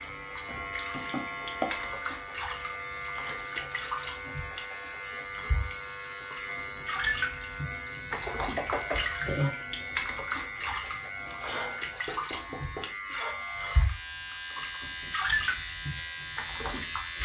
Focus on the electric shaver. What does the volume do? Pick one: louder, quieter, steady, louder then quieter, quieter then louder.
steady.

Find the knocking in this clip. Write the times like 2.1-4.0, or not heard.
0.9-1.6, 8.1-9.0, 12.1-12.9.